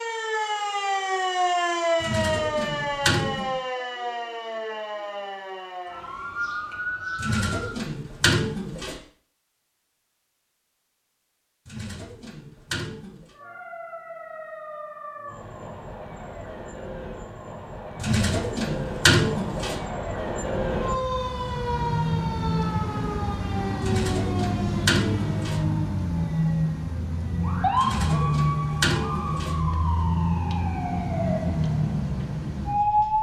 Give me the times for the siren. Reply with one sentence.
You can hear the siren from 0.0 to 7.8 s and from 13.2 to 33.1 s.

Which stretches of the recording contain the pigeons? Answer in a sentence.
You can hear the pigeons from 2.0 to 3.5 s, from 7.2 to 8.9 s, from 11.7 to 13.3 s, from 18.0 to 19.8 s, from 23.8 to 25.6 s and from 27.8 to 29.6 s.